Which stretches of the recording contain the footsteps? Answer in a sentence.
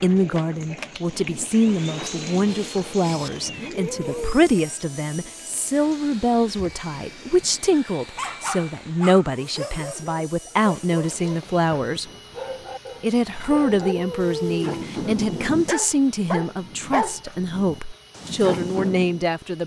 You can't hear the footsteps here.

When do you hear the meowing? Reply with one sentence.
The meowing can be heard from 3.2 to 4.4 s and from 13.2 to 14.8 s.